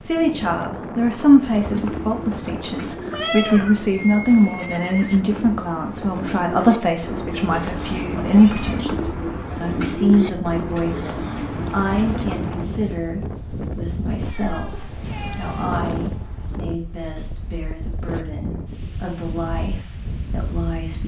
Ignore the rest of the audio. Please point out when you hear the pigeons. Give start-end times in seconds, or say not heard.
1.4-12.6.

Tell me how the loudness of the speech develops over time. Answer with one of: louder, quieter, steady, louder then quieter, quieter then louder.
quieter.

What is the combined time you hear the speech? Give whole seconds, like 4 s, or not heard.
21 s.